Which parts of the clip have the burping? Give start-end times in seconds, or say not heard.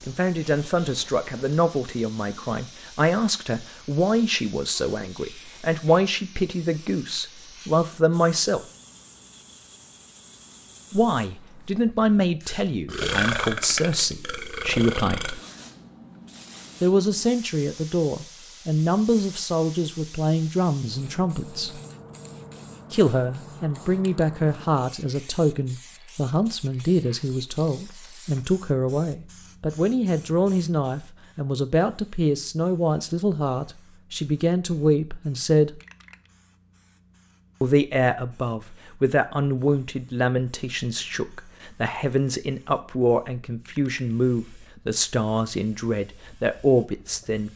12.8-15.3.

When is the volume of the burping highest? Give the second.
13 s.